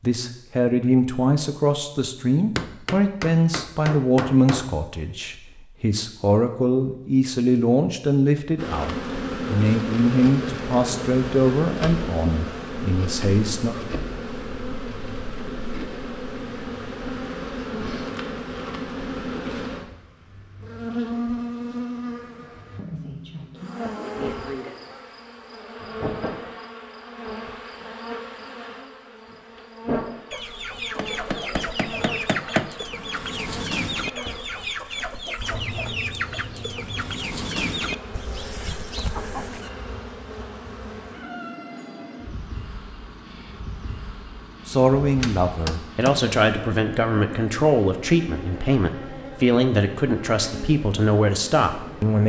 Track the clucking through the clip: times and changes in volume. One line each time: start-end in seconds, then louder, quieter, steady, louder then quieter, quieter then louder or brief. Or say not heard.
30.3-39.7 steady.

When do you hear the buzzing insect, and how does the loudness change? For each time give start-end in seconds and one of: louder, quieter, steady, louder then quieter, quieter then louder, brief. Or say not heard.
8.6-52.2 quieter.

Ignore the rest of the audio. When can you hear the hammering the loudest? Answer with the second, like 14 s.
32 s.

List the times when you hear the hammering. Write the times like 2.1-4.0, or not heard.
2.5-4.7, 30.9-32.9, 45.2-46.3.